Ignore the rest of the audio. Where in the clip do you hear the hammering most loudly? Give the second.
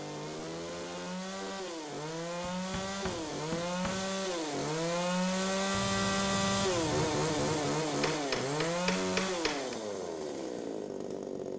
9 s.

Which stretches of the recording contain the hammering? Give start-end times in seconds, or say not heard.
2.4-4.2, 8.0-9.8.